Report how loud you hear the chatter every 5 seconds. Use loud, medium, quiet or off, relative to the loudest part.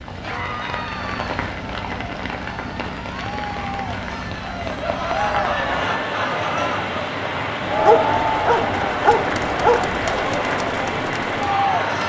medium, loud, loud.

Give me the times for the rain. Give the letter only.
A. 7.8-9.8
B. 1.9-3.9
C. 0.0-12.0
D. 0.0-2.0
C.